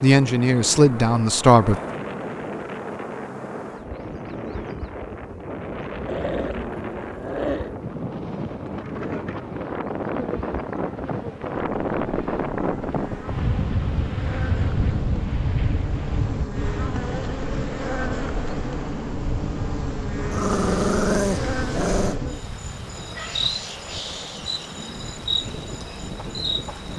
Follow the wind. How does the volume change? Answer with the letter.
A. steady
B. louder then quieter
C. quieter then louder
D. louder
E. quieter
B.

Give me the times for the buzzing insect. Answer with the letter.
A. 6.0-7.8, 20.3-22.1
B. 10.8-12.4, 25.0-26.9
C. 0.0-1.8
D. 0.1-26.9
D.